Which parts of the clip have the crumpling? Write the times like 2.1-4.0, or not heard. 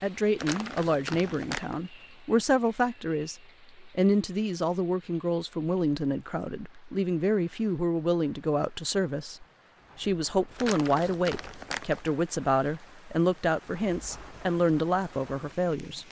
0.3-1.8, 10.6-12.1.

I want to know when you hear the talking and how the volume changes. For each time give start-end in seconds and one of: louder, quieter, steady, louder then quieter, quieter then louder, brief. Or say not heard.
0.0-16.0 steady.